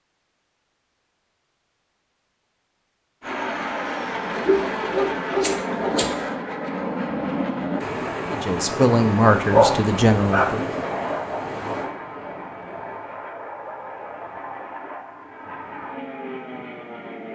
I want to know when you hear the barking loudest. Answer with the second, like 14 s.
10 s.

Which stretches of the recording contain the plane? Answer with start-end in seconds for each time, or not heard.
3.2-17.3.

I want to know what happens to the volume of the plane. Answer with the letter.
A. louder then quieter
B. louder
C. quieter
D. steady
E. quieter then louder
C.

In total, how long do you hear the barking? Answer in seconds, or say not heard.
3 s.